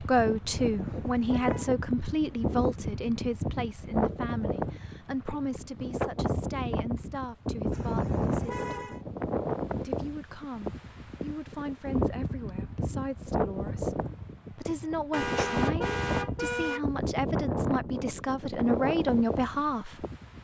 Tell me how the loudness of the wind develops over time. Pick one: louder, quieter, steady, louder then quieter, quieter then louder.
steady.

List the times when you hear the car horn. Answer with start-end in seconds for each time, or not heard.
0.6-1.7, 7.7-9.0, 15.1-16.9.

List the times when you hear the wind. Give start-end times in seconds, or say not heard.
0.0-20.3.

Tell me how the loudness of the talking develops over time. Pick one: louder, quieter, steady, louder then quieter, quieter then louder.
quieter then louder.